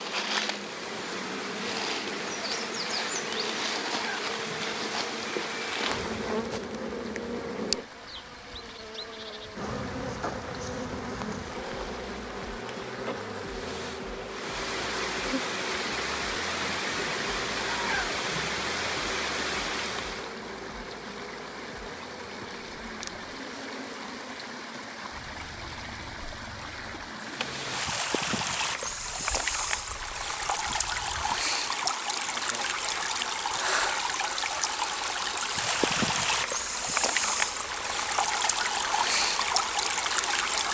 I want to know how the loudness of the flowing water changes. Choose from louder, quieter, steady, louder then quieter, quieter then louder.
louder.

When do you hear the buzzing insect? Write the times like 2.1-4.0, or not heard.
0.0-40.7.